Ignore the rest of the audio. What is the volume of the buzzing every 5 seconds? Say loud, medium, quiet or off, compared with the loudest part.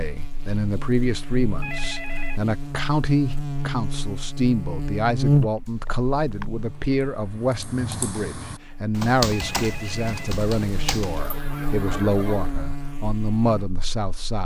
medium, loud, medium.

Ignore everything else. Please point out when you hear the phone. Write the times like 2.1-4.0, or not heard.
1.6-2.4, 9.3-10.4.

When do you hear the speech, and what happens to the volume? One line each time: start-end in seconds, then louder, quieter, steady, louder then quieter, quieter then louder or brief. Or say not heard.
0.0-14.4 steady.